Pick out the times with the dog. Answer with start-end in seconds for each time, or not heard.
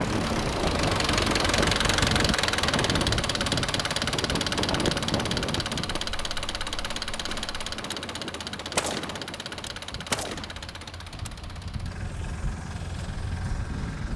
not heard.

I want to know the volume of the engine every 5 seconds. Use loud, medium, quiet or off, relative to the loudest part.
loud, medium, quiet.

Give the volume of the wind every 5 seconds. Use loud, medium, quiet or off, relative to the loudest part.
loud, medium, medium.